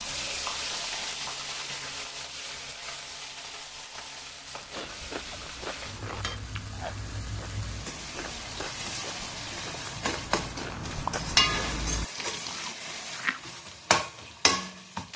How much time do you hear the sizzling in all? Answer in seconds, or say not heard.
15 s.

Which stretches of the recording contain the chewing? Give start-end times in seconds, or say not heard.
4.5-13.8.